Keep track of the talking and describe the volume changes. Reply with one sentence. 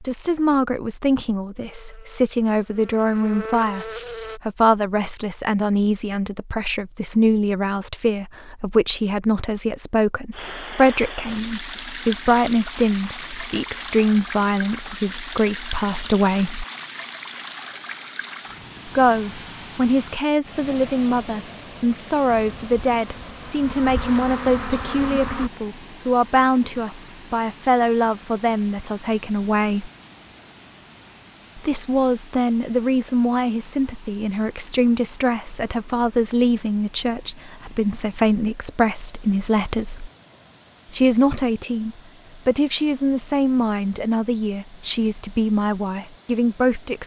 The volume of the talking stays about the same.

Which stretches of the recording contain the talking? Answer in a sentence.
The talking can be heard from 0.0 to 16.6 s, from 18.9 to 29.9 s, from 31.6 to 40.1 s and from 40.9 to 47.0 s.